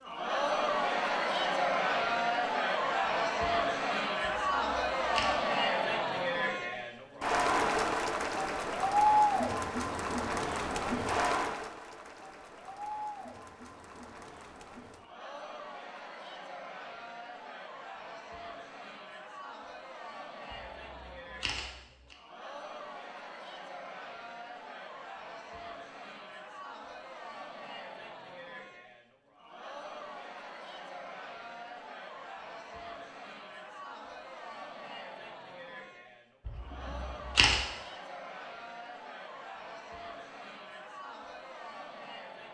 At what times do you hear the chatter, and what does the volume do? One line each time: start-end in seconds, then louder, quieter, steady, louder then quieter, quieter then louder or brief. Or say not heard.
0.0-42.4 quieter.